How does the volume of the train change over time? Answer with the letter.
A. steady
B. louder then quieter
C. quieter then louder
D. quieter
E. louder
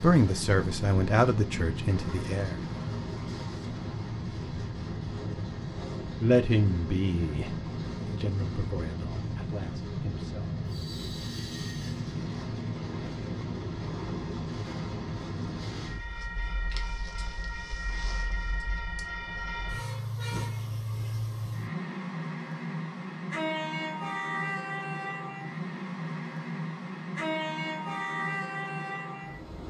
A.